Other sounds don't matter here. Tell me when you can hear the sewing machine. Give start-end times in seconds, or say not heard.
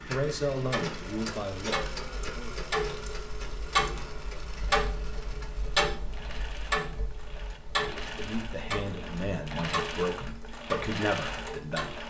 0.0-12.0.